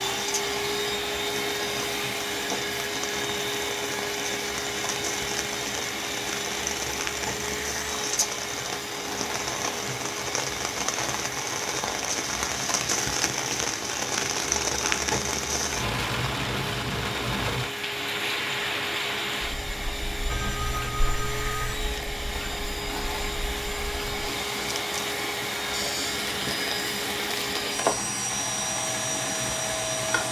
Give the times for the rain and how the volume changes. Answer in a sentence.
The rain can be heard from 0.1 to 30.2 s, getting louder then quieter.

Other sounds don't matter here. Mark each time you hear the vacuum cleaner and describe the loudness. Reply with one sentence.
You can hear the vacuum cleaner from 0.0 to 30.2 s, getting quieter then louder.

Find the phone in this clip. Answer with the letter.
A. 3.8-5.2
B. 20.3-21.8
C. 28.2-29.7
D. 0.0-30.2
B.